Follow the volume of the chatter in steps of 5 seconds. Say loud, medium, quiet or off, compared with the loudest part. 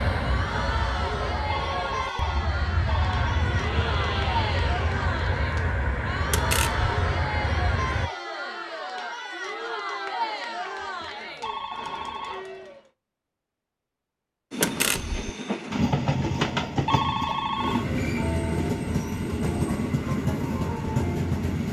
loud, loud, loud, off, off.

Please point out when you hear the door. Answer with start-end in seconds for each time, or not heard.
6.3-6.8, 14.6-15.3.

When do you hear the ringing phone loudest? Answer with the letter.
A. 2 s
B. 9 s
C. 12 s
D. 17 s
D.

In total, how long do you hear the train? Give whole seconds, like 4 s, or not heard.
15 s.